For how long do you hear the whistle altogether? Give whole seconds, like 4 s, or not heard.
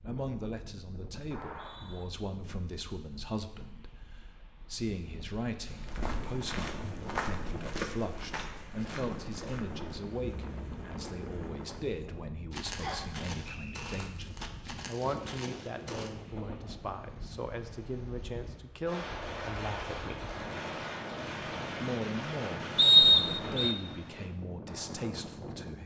3 s.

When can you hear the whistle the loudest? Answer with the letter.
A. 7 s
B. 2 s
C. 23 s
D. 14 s
C.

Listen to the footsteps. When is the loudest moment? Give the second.
7 s.